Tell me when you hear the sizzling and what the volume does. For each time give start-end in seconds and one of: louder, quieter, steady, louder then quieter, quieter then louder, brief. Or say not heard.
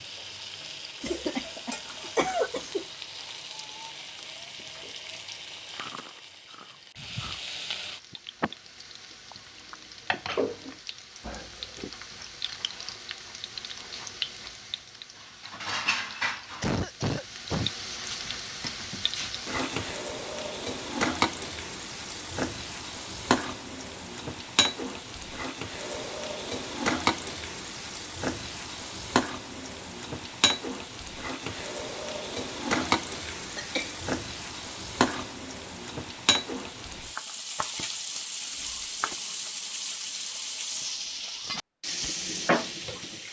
0.0-43.2 louder.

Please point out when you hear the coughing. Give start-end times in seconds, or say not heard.
1.0-2.9, 16.6-17.7, 32.8-34.0.